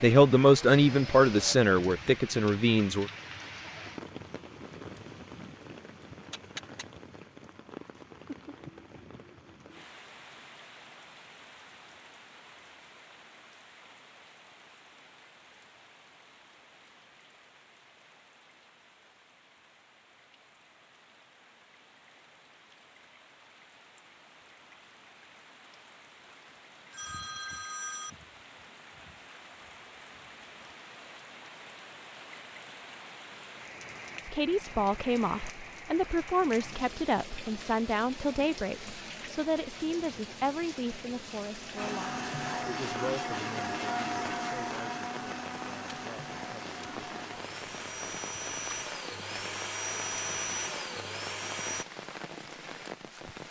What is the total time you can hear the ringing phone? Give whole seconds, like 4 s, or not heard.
2 s.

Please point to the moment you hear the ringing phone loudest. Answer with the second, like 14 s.
28 s.